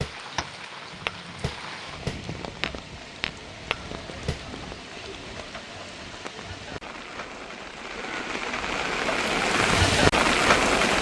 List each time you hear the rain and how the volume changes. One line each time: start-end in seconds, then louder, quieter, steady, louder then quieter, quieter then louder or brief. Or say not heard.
0.0-10.9 louder.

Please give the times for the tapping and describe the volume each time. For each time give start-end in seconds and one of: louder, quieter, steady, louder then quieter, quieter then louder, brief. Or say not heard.
0.0-4.5 quieter then louder.